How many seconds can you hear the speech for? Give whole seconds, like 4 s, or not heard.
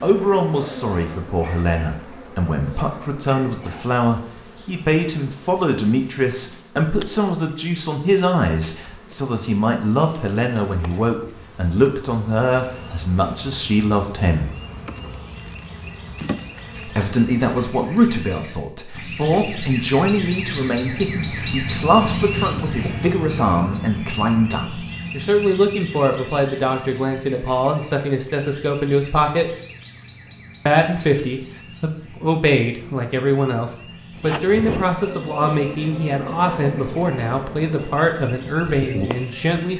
36 s.